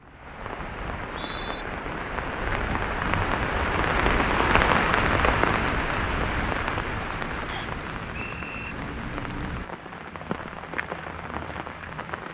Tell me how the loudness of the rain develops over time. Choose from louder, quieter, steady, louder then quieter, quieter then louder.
louder then quieter.